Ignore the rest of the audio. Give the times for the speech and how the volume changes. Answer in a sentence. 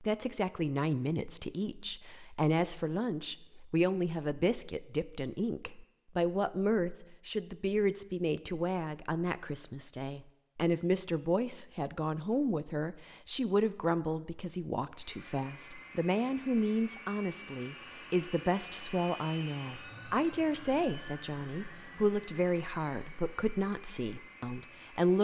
The speech can be heard from 0.0 to 25.1 s, at a steady volume.